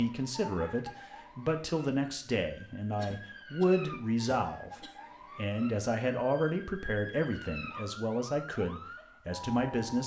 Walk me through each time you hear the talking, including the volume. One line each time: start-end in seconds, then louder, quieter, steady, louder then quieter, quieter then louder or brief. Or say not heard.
0.0-10.0 steady.